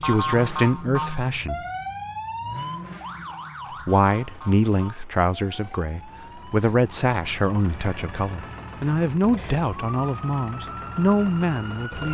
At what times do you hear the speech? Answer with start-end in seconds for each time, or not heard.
0.0-1.6, 3.9-12.0.